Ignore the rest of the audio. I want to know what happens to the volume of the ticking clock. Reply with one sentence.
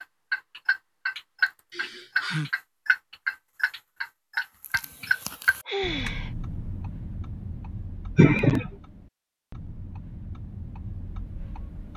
The volume of the ticking clock goes down.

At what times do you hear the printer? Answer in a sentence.
You can't hear the printer here.